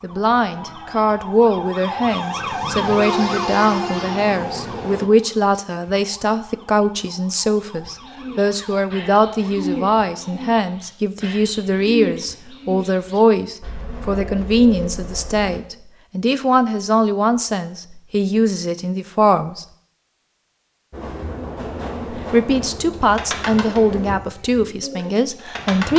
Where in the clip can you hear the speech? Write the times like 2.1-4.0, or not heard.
0.0-19.6, 22.1-25.9.